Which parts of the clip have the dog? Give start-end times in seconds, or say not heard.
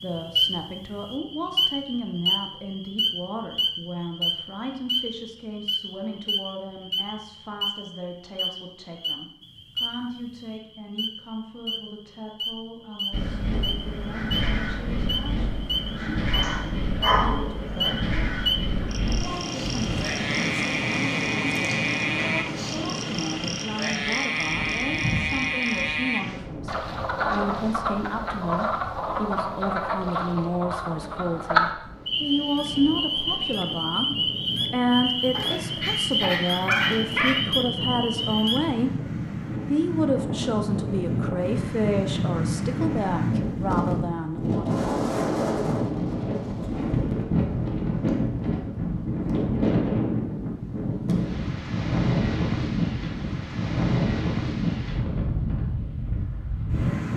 16.4-17.9, 35.3-37.4.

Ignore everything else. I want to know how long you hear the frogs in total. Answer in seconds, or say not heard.
39 s.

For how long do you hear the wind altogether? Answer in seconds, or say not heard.
44 s.